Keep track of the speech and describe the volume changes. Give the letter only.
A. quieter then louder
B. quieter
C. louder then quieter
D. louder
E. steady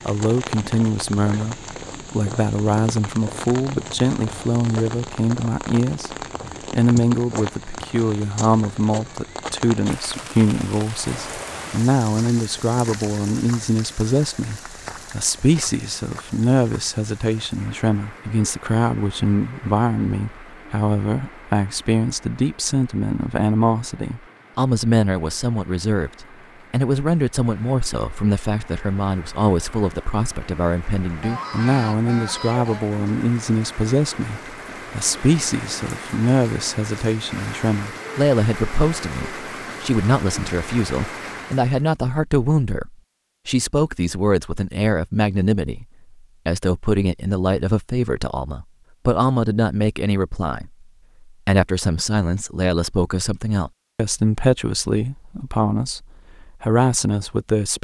E.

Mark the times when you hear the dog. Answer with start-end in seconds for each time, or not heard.
not heard.